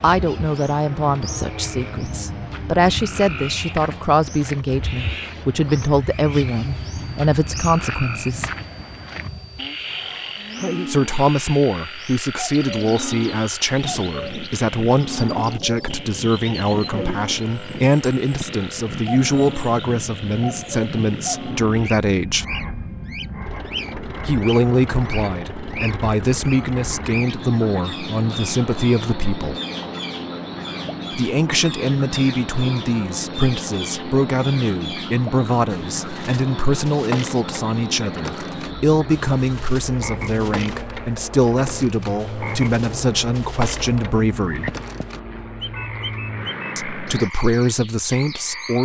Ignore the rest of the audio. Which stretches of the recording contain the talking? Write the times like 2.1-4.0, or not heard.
0.0-8.5, 10.8-22.4, 24.2-29.6, 31.1-44.8, 46.8-48.8.